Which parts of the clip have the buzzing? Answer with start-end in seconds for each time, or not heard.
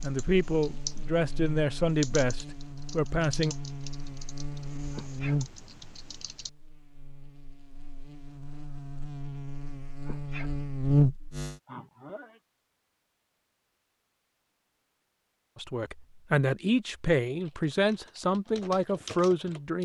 0.0-11.6.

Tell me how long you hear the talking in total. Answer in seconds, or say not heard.
8 s.